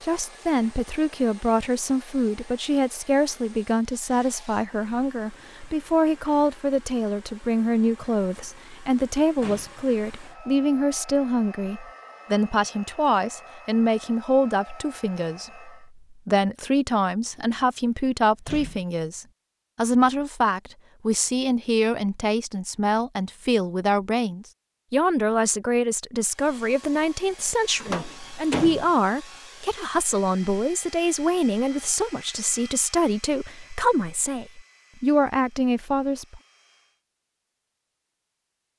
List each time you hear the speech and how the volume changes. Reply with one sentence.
The speech can be heard from 0.0 to 36.4 s, at a steady volume.